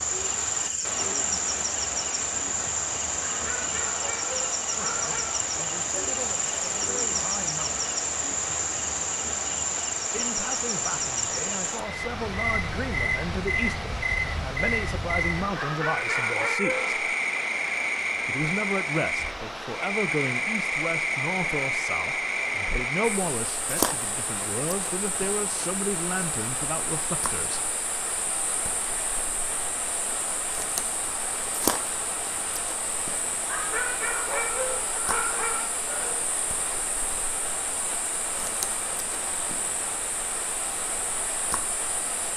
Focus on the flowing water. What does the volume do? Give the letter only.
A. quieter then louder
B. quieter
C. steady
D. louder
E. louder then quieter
C.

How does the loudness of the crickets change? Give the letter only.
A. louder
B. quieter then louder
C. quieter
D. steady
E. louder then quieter
C.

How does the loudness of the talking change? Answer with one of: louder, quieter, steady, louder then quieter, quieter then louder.
louder.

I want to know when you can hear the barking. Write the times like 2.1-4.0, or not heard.
3.2-5.4, 15.6-16.9, 33.5-36.2.